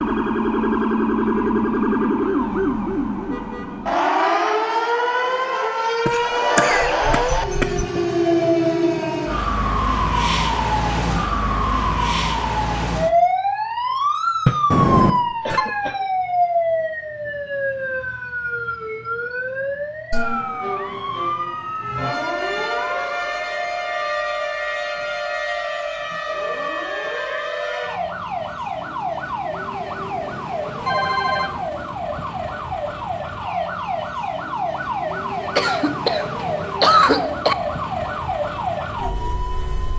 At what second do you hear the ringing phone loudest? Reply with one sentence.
The loudest moment of the ringing phone is at 15 seconds.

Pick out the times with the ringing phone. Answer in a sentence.
You can hear the ringing phone from 14.7 to 15.7 s and from 29.9 to 31.8 s.